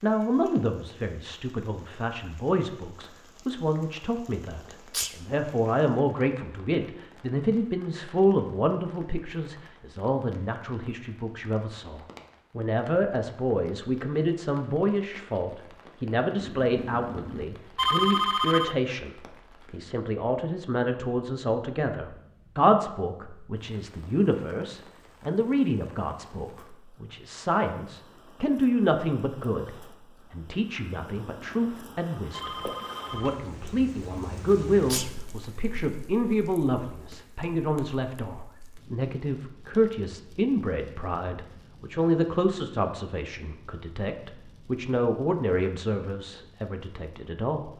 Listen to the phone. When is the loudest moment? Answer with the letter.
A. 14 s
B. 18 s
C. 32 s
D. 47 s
B.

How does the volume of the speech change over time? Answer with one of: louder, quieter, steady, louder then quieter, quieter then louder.
steady.